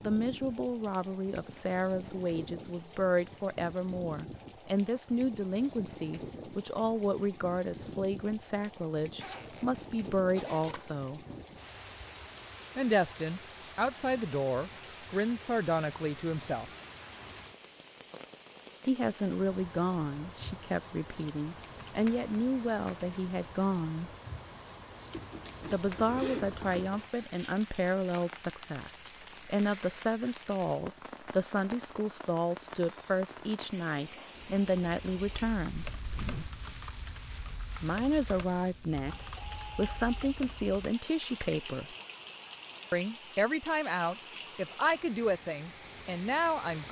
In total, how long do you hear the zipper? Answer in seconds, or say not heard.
4 s.